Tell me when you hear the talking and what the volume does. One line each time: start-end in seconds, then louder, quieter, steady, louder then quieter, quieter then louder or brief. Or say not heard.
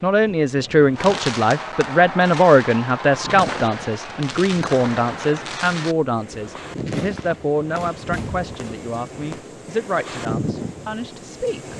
0.0-11.7 quieter.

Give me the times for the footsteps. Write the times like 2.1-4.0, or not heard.
not heard.